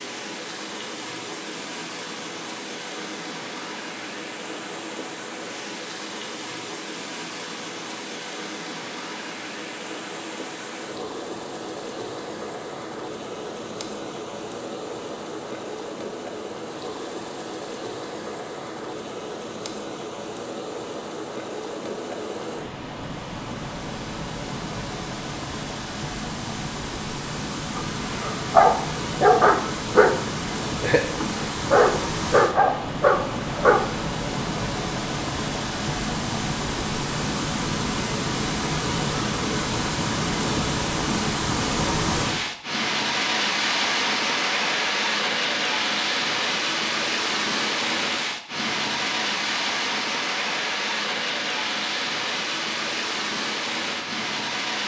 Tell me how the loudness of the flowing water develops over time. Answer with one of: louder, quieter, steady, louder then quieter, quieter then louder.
louder.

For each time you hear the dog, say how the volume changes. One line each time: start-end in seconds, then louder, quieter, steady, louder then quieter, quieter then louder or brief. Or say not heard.
27.8-34.0 quieter then louder.